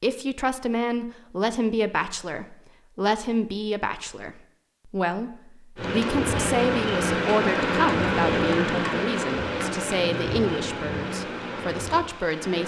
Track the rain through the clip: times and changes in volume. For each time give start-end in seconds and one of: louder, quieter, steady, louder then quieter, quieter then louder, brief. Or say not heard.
5.8-12.6 quieter.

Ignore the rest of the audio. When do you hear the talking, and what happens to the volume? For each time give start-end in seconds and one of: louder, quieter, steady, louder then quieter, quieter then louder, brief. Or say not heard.
0.0-12.6 steady.